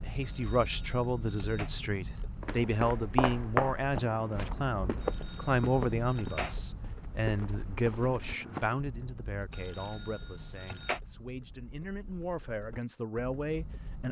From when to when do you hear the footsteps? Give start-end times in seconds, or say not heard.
2.4-8.8.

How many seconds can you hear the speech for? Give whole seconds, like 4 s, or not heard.
14 s.